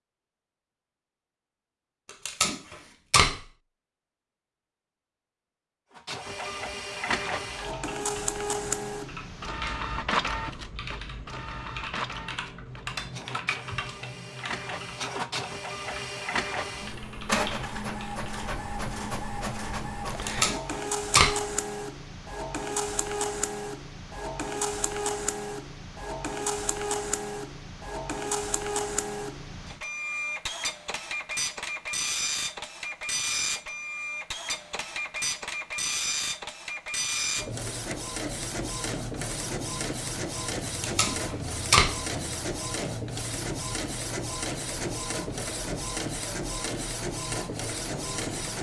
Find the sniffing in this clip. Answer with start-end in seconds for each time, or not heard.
not heard.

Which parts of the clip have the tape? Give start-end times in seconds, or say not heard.
2.2-3.4, 20.1-21.4, 40.6-42.0.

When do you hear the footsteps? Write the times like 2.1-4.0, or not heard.
not heard.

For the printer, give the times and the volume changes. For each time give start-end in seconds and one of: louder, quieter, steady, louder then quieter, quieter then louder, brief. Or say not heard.
5.9-48.5 steady.